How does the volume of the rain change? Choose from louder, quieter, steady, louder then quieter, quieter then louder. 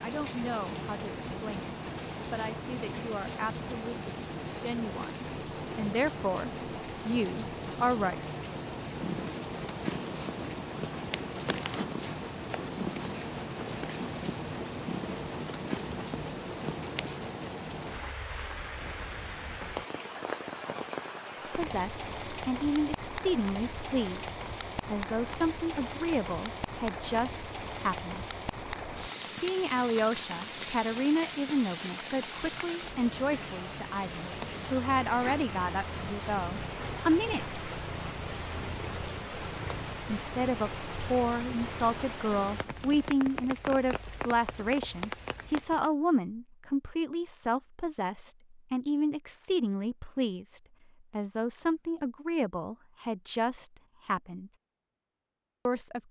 steady.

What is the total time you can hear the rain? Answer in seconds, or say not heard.
46 s.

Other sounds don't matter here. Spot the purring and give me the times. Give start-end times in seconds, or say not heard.
8.9-17.1, 34.3-43.1.